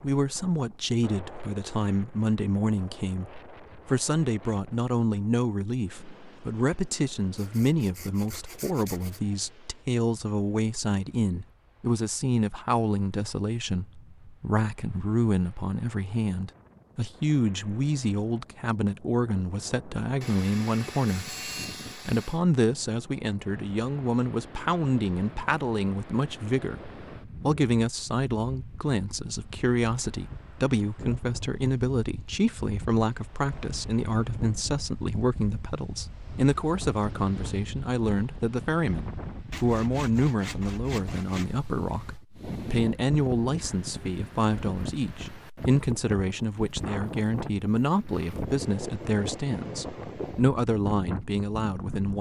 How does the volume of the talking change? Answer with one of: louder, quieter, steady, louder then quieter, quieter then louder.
steady.